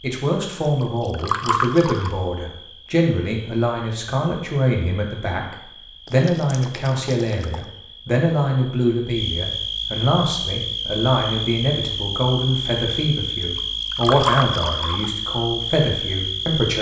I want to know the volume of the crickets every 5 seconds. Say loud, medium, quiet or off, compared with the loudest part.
quiet, medium, loud, loud.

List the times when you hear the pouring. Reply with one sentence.
The pouring can be heard from 0.8 to 2.1 s, from 6.0 to 7.7 s and from 13.6 to 15.1 s.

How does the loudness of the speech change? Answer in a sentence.
The loudness of the speech stays about the same.